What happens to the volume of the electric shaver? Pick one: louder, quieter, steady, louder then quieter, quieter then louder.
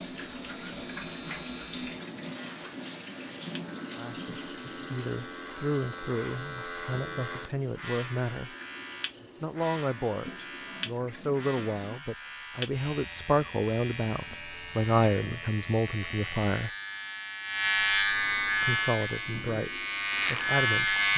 louder.